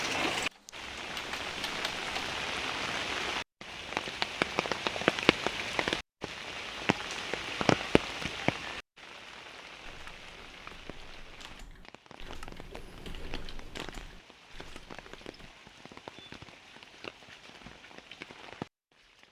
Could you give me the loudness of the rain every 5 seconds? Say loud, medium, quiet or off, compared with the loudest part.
loud, loud, quiet, quiet.